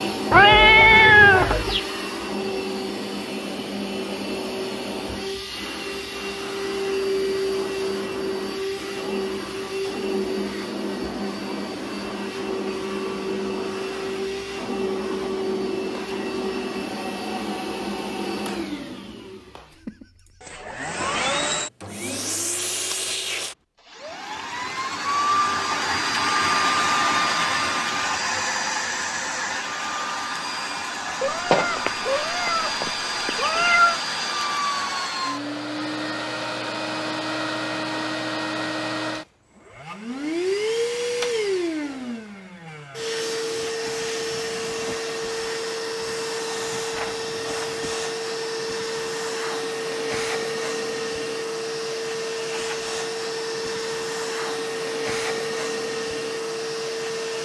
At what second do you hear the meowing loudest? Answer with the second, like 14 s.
1 s.